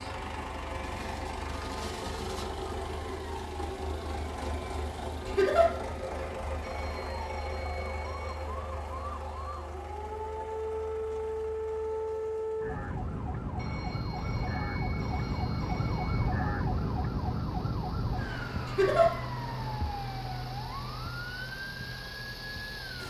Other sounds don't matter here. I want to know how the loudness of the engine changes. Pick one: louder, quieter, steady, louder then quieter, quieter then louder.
quieter then louder.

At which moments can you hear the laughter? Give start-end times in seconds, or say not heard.
5.2-5.7, 18.6-19.1.